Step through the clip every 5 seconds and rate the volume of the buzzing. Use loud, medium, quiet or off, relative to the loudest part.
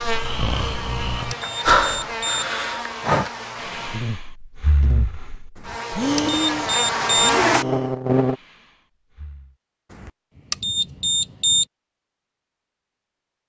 medium, loud, off.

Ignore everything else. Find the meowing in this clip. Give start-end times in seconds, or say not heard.
not heard.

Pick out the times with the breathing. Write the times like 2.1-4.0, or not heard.
0.0-9.6.